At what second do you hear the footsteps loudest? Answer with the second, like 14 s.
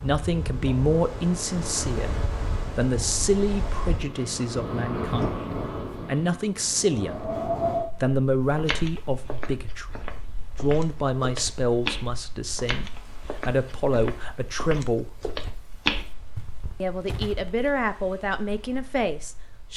16 s.